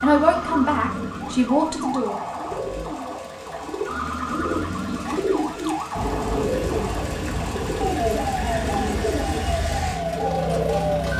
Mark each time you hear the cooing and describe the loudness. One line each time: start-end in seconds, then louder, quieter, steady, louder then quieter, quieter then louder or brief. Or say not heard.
0.2-11.1 louder.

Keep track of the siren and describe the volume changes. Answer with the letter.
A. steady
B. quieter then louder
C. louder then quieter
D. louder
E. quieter
A.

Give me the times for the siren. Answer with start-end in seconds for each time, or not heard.
0.0-11.1.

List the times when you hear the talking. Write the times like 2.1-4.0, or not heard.
0.0-2.2.